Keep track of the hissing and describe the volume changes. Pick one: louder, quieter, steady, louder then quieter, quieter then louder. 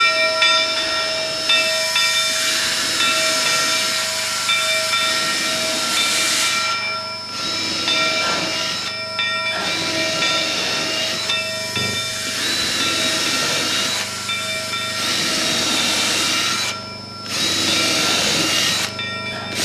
quieter.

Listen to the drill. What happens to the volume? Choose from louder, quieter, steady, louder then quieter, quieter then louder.
louder.